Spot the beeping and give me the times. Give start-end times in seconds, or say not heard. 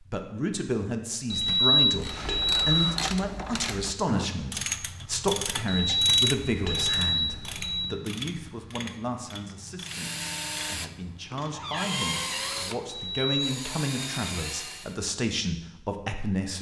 1.3-2.9, 5.7-7.8, 12.8-13.3.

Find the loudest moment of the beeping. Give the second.
2 s.